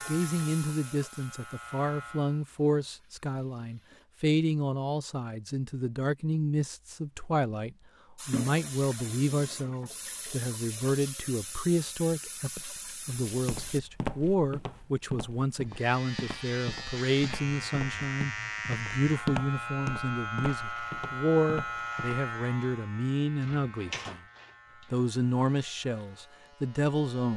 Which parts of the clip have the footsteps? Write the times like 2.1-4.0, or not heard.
13.2-22.2.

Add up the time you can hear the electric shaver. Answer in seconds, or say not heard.
14 s.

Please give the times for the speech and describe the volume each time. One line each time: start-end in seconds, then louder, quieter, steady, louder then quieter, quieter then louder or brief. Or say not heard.
0.1-24.2 steady
24.9-27.3 brief.